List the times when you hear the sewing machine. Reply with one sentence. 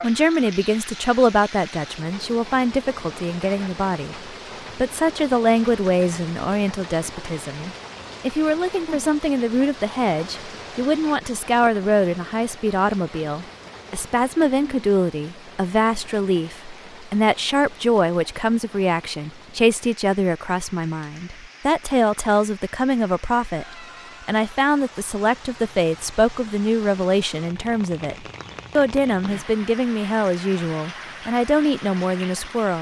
The sewing machine can't be heard in this clip.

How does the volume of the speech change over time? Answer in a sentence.
The volume of the speech stays about the same.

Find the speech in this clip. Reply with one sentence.
The speech can be heard from 0.0 to 23.6 s and from 24.2 to 32.7 s.